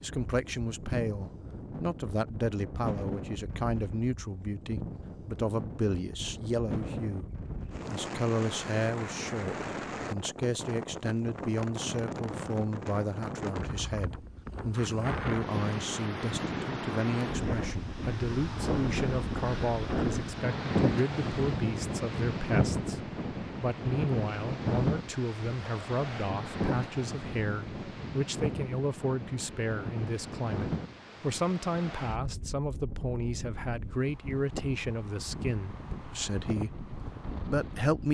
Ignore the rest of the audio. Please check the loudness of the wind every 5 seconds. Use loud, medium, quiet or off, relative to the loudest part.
medium, medium, medium, loud, loud, medium, medium, medium.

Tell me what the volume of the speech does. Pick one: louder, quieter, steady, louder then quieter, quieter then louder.
steady.